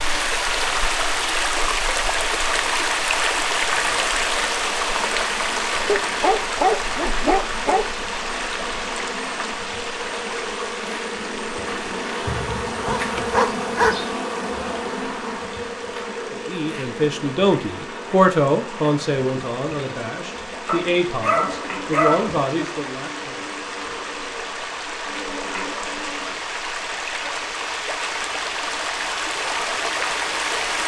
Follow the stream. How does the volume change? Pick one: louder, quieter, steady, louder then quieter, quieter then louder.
quieter then louder.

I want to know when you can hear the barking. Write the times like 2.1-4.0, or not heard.
5.8-7.9, 12.2-14.1, 20.6-22.4.